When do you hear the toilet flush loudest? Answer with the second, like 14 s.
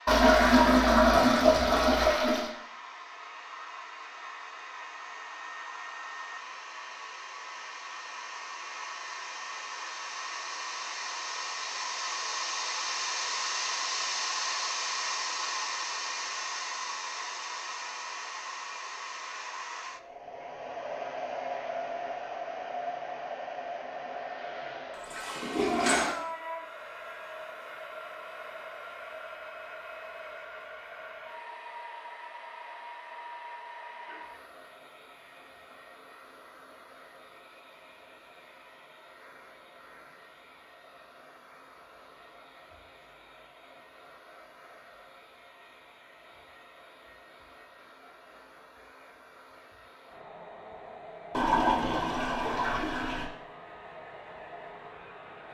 1 s.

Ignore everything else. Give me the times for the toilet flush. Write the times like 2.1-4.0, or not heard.
0.1-2.5, 24.9-26.1, 51.3-53.3.